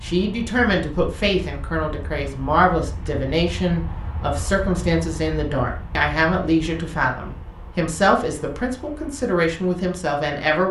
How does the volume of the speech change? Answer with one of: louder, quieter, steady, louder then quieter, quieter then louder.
steady.